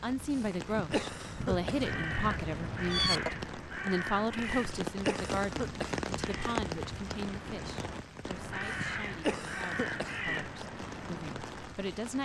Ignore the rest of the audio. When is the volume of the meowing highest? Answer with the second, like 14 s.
3 s.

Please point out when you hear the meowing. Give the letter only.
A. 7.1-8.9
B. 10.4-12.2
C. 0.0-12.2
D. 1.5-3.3
D.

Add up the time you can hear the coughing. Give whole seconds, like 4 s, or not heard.
5 s.